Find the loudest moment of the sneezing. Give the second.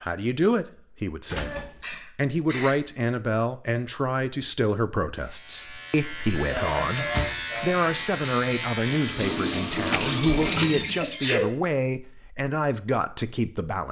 11 s.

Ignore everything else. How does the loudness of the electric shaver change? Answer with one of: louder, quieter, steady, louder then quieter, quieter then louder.
louder.